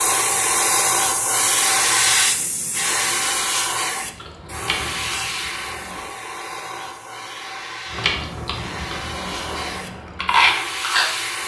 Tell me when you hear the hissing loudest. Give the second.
2 s.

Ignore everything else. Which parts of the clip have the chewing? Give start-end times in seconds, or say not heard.
4.0-6.0, 8.0-11.4.